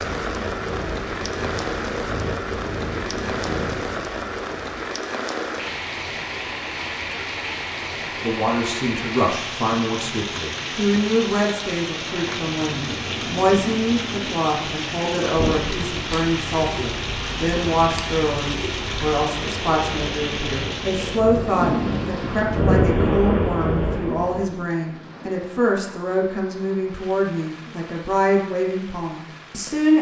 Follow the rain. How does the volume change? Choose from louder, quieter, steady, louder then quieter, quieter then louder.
quieter.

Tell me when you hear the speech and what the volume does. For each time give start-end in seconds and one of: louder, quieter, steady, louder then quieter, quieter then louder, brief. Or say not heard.
8.2-29.9 steady.